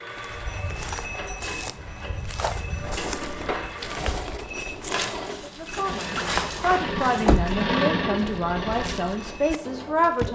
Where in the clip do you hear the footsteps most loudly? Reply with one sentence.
The volume of the footsteps peaks at 6 seconds.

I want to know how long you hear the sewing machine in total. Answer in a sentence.
You can hear the sewing machine for 10 seconds altogether.